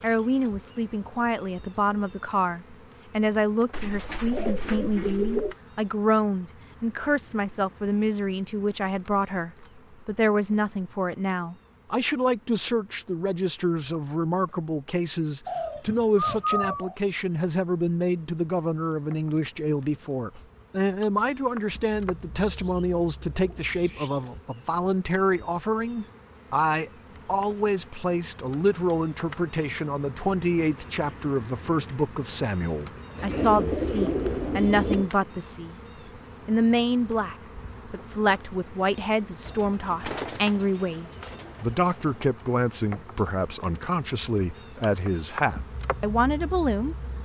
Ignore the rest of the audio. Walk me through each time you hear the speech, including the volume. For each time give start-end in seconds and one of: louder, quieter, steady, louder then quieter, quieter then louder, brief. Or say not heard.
0.0-35.8 steady
36.5-47.0 steady.